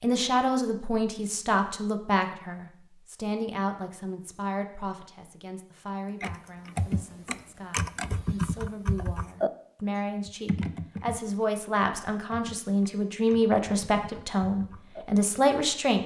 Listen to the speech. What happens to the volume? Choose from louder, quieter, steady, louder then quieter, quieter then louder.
quieter then louder.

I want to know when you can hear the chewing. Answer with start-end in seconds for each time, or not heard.
not heard.